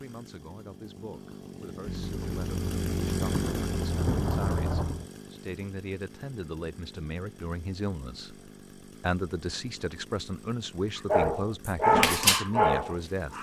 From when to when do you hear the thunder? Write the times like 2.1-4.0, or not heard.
1.9-5.0.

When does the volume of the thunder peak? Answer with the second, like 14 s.
4 s.